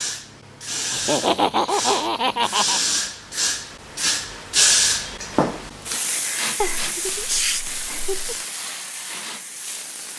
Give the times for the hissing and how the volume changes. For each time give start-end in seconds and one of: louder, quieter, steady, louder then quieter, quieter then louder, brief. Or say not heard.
0.0-10.1 louder then quieter.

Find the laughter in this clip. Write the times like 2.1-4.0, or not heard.
0.9-2.8, 6.6-8.4.